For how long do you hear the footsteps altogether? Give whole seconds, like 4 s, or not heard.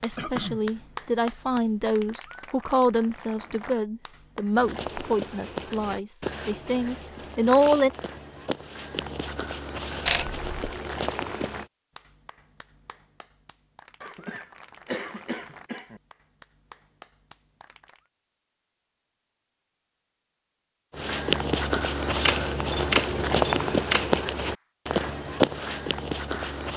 13 s.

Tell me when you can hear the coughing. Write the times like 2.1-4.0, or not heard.
0.1-0.6, 14.0-16.0.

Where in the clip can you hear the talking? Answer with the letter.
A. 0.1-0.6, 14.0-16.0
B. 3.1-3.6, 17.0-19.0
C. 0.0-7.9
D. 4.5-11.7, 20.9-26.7
C.